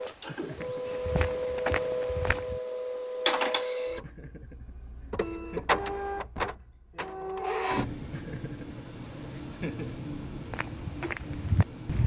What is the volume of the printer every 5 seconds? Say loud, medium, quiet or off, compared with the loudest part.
loud, loud, medium.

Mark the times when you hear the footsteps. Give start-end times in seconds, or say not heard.
0.0-2.6, 10.3-12.0.